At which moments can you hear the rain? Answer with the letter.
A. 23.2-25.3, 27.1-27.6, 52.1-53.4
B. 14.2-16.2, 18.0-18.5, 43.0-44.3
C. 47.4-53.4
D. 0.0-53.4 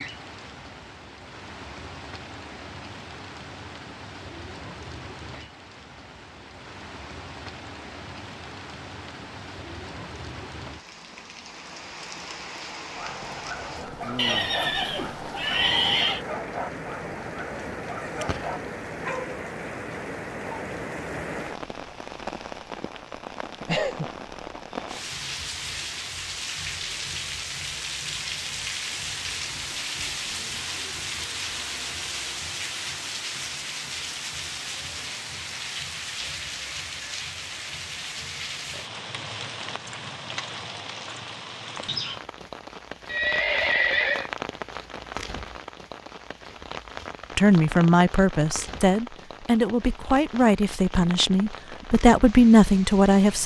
D.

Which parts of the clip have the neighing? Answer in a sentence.
The neighing can be heard from 14.2 to 16.2 s, from 18.0 to 18.5 s and from 43.0 to 44.3 s.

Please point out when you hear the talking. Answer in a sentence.
You can hear the talking from 47.4 to 53.4 s.